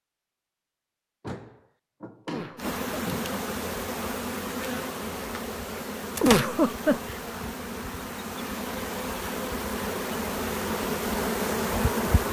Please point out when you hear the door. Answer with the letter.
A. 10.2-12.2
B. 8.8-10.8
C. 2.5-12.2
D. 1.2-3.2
D.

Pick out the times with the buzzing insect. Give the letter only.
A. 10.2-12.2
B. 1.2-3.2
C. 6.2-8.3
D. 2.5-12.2
D.